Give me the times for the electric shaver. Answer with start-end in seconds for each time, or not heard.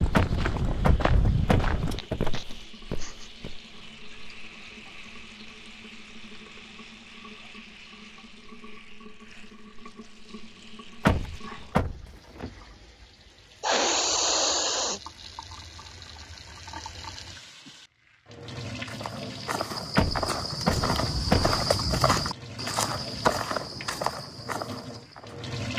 not heard.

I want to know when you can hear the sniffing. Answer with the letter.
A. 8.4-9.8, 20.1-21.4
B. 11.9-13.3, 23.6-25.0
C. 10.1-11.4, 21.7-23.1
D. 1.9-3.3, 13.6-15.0
D.